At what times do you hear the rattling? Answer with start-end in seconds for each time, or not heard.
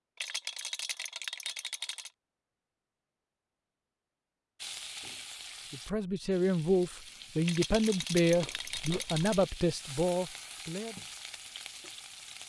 0.1-2.1, 7.5-9.5.